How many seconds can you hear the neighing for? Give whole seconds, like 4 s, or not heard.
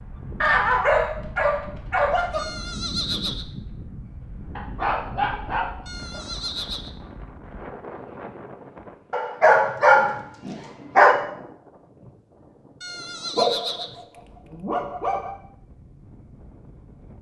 4 s.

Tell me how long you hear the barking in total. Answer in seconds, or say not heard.
8 s.